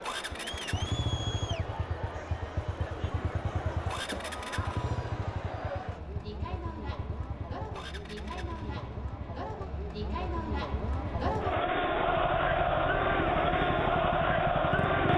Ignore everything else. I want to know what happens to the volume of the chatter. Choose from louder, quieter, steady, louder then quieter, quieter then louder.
louder.